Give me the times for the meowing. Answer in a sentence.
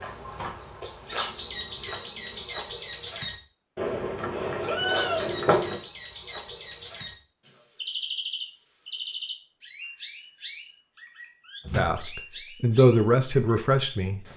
The meowing can be heard from 3.8 to 5.8 s.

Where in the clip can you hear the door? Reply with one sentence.
The door can be heard from 11.7 to 12.1 s.